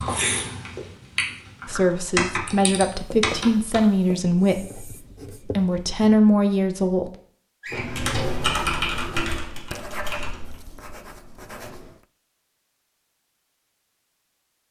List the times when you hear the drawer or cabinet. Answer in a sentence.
You can hear the drawer or cabinet from 7.6 to 8.5 s.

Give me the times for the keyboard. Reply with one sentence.
You can hear the keyboard from 0.0 to 3.8 s and from 7.8 to 10.6 s.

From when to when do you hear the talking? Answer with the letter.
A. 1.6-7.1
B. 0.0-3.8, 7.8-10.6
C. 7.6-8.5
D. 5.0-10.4
A.